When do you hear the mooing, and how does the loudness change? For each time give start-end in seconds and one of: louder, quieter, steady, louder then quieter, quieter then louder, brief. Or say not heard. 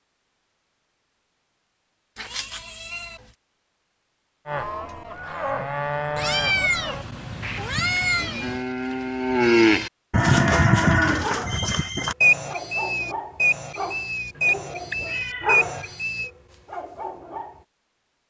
4.5-16.3 louder then quieter.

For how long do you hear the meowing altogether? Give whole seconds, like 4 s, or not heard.
5 s.